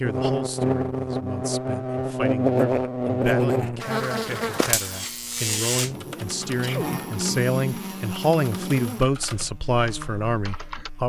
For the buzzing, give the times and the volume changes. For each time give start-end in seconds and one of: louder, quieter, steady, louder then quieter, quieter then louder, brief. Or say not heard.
0.0-11.0 quieter.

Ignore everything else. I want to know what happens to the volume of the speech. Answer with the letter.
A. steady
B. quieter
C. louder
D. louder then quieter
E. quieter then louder
C.